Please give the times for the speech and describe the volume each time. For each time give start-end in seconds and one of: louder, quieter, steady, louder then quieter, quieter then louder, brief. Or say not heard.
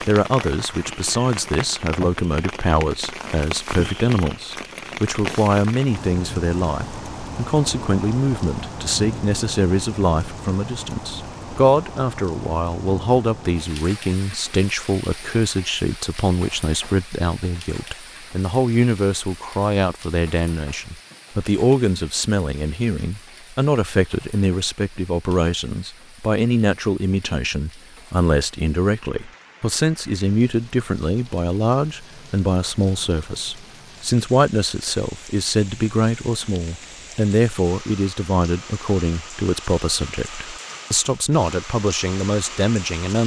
0.0-43.2 steady.